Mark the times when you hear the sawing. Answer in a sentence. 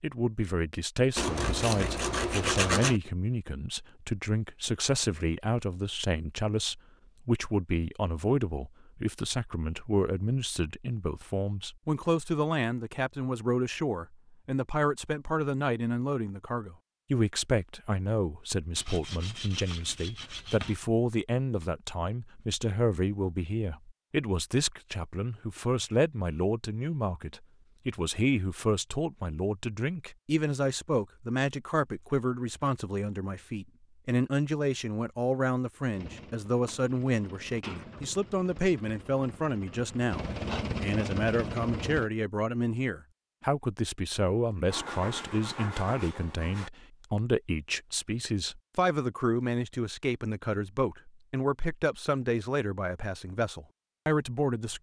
The sawing can be heard from 1.1 to 3.0 s, from 18.8 to 20.8 s and from 44.6 to 46.7 s.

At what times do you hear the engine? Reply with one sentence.
You can hear the engine from 35.9 to 42.1 s.